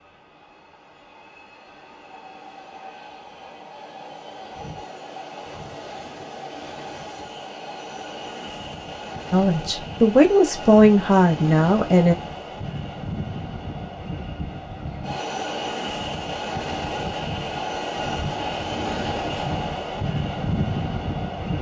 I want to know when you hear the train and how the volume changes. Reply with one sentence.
You can hear the train from 0.0 to 21.5 s, getting louder.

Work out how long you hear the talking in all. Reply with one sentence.
You can hear the talking for 3 seconds altogether.